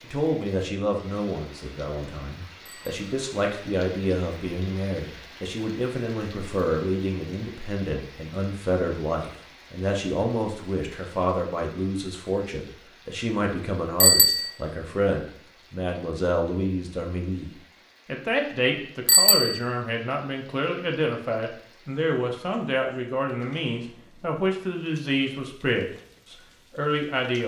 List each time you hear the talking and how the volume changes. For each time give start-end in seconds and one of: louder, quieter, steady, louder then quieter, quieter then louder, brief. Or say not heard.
0.0-27.4 steady.